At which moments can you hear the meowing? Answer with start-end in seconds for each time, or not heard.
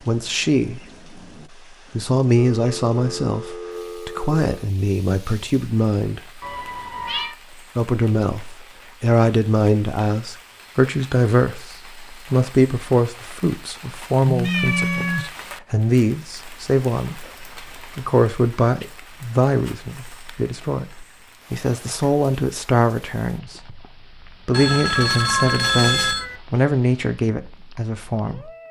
6.4-7.3, 14.4-15.3, 24.9-26.4.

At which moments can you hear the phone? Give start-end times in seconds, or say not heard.
2.4-4.5, 14.2-15.3, 24.5-26.2.